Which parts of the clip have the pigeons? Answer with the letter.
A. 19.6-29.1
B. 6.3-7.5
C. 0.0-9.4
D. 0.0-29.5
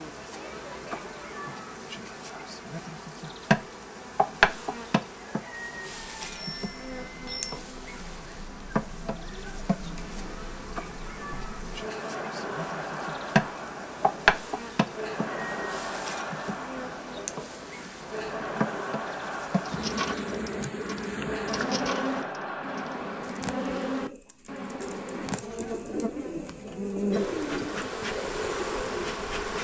A.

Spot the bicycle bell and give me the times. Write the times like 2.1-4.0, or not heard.
6.3-7.5.